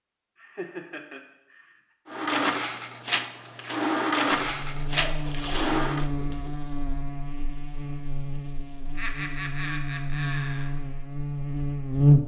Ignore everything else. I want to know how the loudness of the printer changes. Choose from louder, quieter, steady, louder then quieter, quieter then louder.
louder then quieter.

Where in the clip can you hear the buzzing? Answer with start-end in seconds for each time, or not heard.
4.3-12.2.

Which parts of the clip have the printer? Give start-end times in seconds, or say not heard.
2.0-6.0.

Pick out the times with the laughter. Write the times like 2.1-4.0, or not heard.
0.3-1.8, 5.0-6.5, 8.9-10.7.